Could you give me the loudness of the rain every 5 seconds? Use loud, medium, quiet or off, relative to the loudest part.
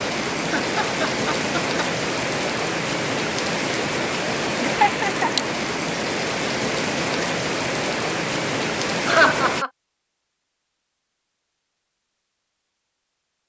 loud, loud, off.